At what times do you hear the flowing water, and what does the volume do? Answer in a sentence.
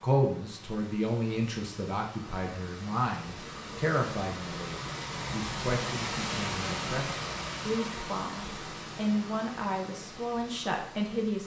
The flowing water can be heard from 0.0 to 11.4 s, getting louder then quieter.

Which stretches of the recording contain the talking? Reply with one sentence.
The talking can be heard from 0.0 to 11.4 s.